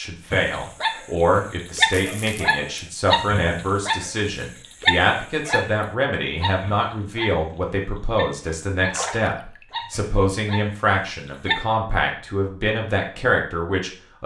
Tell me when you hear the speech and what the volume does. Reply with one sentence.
You can hear the speech from 0.0 to 14.2 s, at a steady volume.